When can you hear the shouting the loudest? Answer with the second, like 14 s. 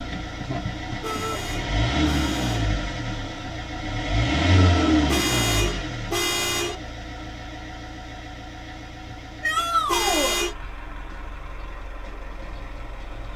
10 s.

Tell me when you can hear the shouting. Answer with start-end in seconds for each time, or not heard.
1.0-1.4, 4.5-5.0, 9.4-10.4.